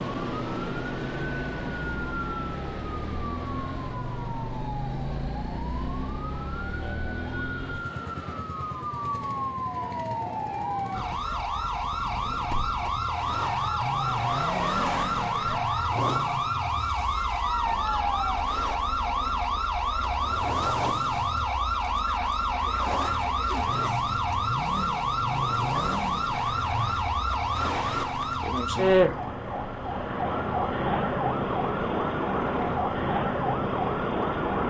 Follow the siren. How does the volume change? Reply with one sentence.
The loudness of the siren goes up.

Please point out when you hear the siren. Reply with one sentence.
The siren can be heard from 0.0 to 34.6 s.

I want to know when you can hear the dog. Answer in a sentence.
You can't hear the dog here.